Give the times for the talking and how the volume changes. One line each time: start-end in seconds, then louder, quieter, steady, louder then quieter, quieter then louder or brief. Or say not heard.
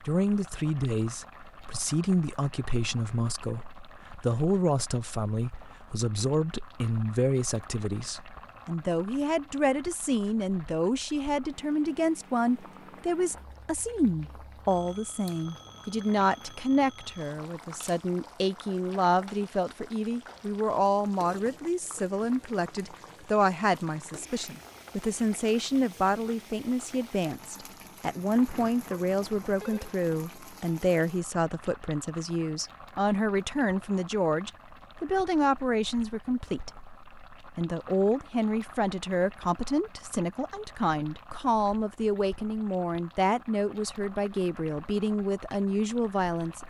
0.0-46.6 steady.